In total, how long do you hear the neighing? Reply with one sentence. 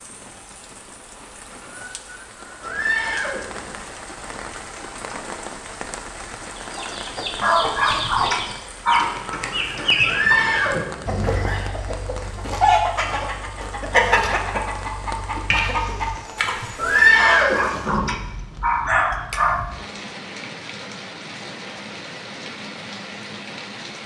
The neighing can be heard for 4 seconds in total.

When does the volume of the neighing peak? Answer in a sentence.
The loudest moment of the neighing is at 17 seconds.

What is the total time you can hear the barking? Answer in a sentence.
The barking can be heard for 4 seconds in total.